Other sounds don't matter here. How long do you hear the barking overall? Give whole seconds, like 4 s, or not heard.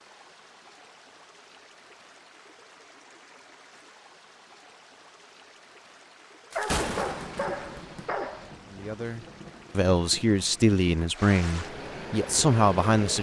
2 s.